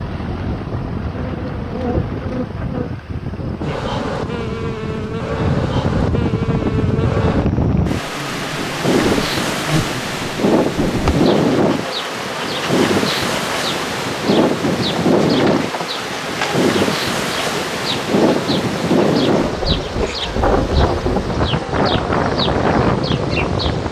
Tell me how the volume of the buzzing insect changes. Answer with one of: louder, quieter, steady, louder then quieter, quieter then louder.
steady.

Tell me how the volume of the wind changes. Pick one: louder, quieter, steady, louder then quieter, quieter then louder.
louder.